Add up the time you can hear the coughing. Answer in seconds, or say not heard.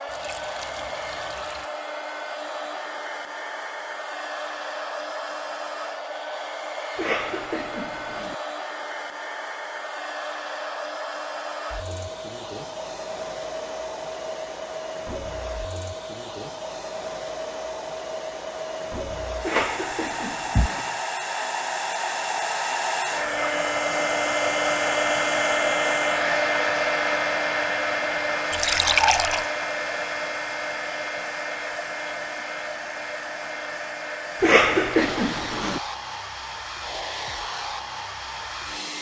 4 s.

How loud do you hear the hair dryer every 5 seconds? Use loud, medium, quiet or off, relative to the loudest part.
medium, medium, medium, medium, loud, loud, medium, medium.